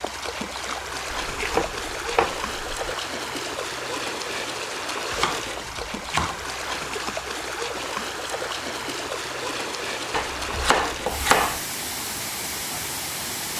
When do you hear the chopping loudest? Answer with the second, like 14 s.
11 s.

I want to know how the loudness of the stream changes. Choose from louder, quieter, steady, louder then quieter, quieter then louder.
steady.